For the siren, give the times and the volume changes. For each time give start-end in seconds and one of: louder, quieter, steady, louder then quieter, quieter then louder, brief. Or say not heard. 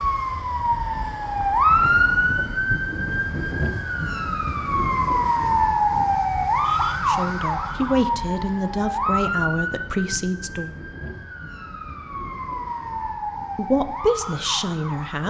0.0-15.2 quieter.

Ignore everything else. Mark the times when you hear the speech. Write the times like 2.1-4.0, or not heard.
7.0-10.8, 13.6-15.2.